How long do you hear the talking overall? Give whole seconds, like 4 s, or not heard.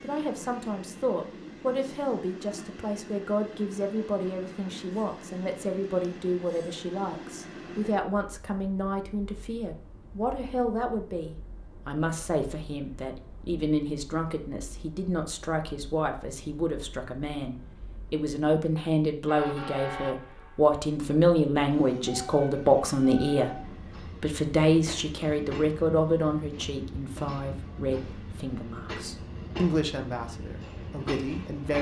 32 s.